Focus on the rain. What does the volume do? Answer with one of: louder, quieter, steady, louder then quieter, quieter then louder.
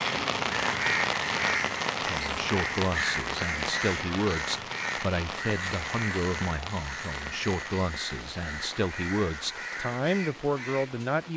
quieter.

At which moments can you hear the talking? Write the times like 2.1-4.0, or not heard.
2.0-11.3.